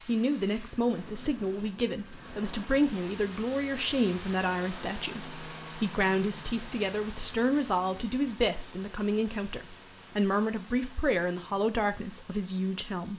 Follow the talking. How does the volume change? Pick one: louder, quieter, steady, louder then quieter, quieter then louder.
steady.